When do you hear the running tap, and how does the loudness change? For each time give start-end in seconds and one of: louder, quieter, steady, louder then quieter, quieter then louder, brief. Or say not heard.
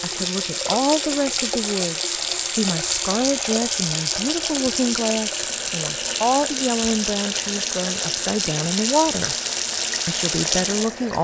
0.0-11.1 steady.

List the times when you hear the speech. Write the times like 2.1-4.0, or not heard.
0.0-9.3, 10.1-11.1.